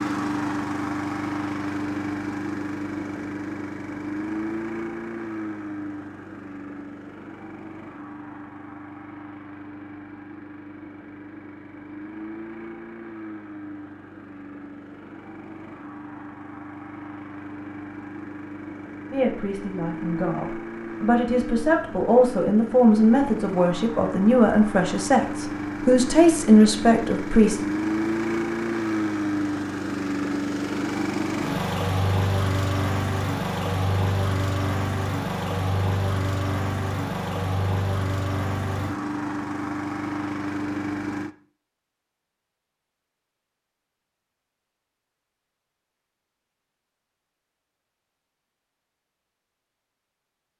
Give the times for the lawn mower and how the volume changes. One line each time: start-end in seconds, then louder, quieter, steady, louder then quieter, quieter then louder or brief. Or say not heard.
0.0-41.4 quieter then louder.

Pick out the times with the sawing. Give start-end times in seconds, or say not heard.
not heard.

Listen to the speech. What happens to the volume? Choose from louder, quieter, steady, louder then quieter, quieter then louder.
louder.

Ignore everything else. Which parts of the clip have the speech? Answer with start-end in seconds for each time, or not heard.
19.1-27.7.